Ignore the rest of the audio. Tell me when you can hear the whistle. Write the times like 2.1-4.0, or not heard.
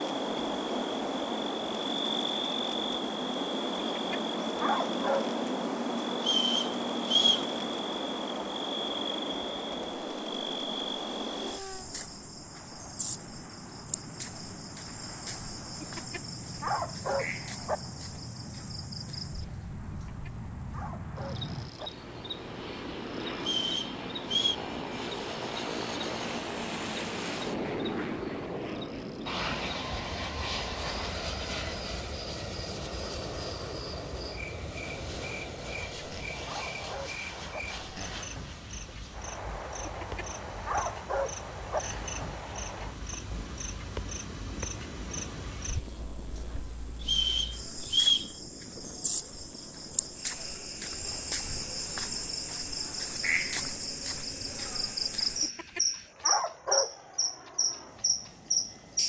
6.2-7.5, 23.4-24.6, 47.0-48.3.